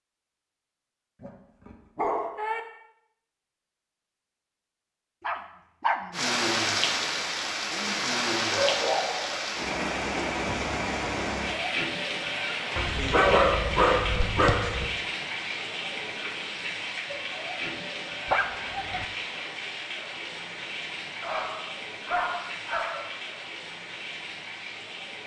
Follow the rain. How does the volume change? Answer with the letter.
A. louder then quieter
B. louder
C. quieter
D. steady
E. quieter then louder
C.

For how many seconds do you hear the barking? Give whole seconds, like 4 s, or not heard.
8 s.